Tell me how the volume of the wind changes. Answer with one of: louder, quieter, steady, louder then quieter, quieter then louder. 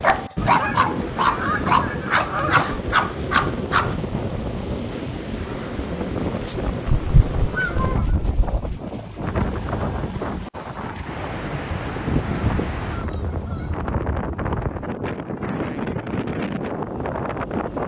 steady.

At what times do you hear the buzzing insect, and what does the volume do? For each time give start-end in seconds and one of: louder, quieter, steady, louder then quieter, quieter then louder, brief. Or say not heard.
not heard.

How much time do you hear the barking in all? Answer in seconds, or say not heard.
4 s.